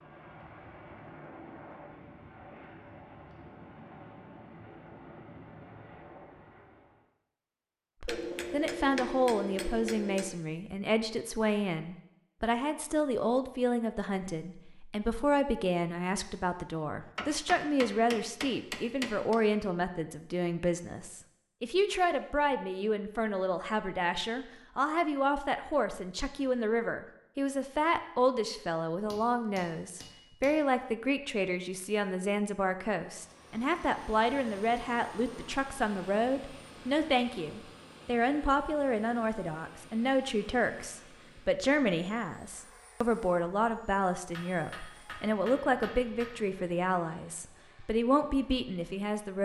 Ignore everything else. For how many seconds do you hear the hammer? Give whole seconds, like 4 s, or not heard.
8 s.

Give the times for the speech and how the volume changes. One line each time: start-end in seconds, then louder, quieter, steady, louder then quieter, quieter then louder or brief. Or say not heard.
8.0-49.4 steady.